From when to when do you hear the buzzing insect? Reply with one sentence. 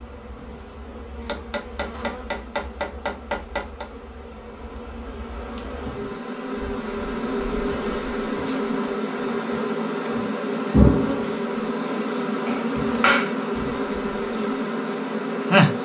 The buzzing insect can be heard from 0.0 to 15.8 s.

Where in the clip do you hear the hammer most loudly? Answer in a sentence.
The loudest moment of the hammer is at 13 seconds.